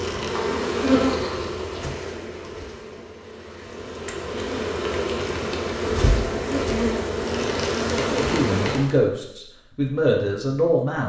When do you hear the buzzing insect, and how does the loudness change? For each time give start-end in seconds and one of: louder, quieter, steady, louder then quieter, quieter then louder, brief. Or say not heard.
0.0-8.9 quieter then louder.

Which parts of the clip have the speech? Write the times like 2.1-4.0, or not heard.
8.1-11.0.